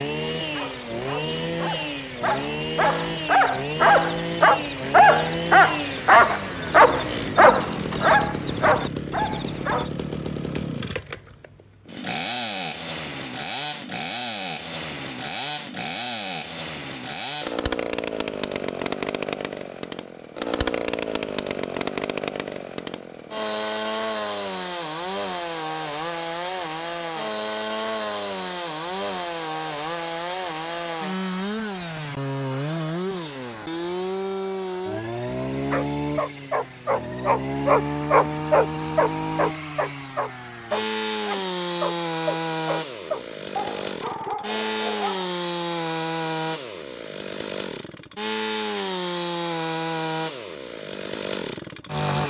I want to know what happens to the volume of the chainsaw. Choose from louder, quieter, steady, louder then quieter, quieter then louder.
steady.